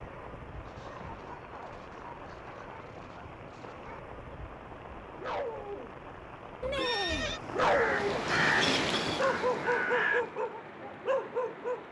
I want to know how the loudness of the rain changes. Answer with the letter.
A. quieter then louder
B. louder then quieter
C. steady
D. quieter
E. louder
B.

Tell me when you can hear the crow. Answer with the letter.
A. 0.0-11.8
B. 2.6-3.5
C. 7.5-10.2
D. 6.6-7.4
C.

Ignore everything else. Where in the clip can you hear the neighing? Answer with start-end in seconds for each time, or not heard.
6.6-7.4.